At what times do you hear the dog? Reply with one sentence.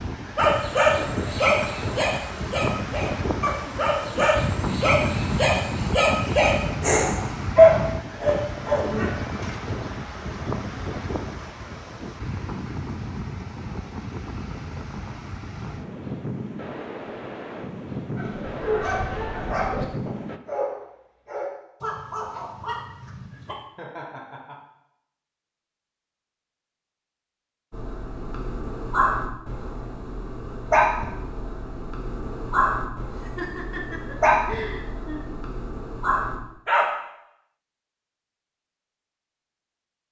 You can hear the dog from 0.3 to 9.5 s, from 18.1 to 23.6 s and from 27.7 to 36.9 s.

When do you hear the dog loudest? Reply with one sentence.
The volume of the dog peaks at 8 seconds.